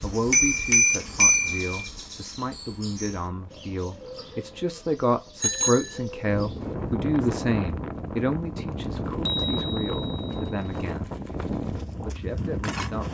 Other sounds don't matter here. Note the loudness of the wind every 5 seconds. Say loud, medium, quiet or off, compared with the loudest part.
quiet, loud, loud.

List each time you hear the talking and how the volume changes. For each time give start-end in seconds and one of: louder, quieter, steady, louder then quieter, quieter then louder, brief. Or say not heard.
0.0-11.1 louder then quieter
11.8-13.1 brief.